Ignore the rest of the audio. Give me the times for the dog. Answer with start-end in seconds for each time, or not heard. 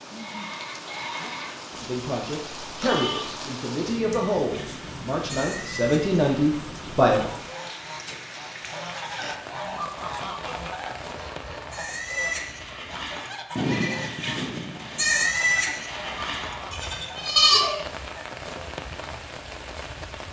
not heard.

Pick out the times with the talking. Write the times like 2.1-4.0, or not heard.
1.8-7.3.